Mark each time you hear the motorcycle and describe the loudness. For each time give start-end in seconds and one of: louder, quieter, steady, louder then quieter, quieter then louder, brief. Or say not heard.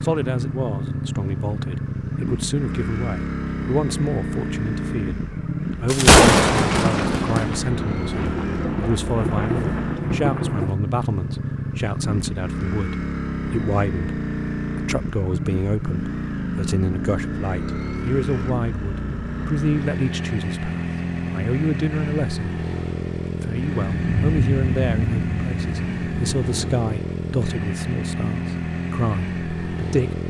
0.0-30.2 steady.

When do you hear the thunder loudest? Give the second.
6 s.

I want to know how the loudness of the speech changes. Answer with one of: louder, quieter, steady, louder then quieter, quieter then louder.
steady.